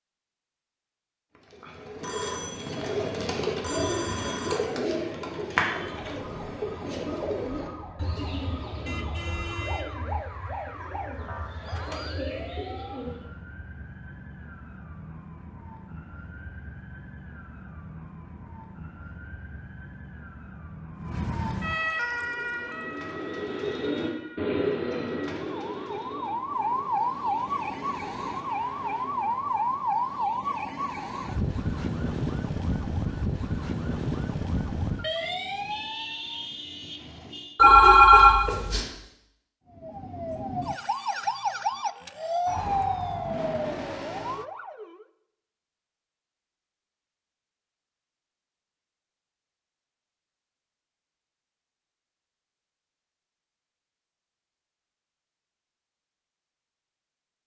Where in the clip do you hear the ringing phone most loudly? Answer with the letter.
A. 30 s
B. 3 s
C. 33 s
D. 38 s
D.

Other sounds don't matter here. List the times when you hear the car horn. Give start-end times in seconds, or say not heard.
8.8-9.9, 35.2-37.6.